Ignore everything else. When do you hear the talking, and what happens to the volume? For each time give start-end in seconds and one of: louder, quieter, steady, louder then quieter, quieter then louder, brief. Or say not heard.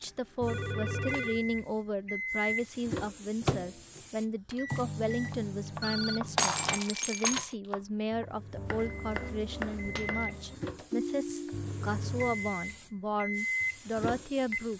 0.0-14.7 steady.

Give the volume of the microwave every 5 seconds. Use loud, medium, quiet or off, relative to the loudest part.
loud, medium, loud.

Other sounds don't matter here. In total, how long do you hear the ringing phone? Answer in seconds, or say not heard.
3 s.